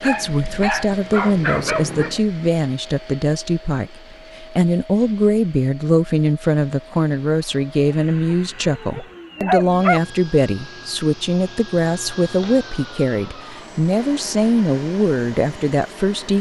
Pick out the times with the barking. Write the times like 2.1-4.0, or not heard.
0.0-2.2, 8.9-10.0.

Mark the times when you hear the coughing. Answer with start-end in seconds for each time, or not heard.
not heard.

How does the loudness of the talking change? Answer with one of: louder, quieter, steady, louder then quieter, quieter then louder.
steady.